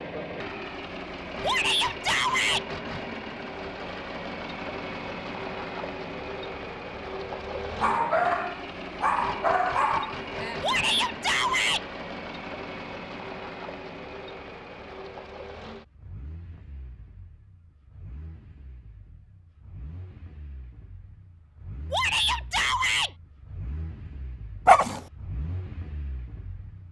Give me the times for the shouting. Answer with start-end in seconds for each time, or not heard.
1.4-2.6, 10.6-11.8, 21.9-23.1.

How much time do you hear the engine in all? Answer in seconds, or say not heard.
27 s.